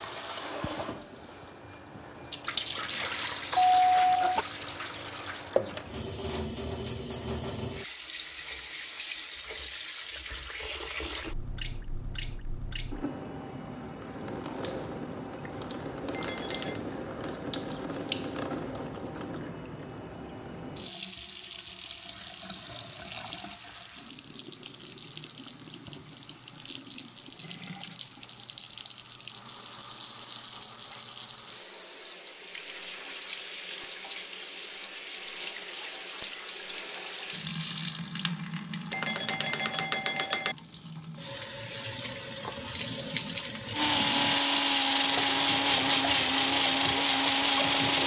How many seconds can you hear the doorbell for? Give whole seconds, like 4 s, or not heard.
3 s.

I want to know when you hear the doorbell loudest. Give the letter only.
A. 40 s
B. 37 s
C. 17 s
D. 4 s
D.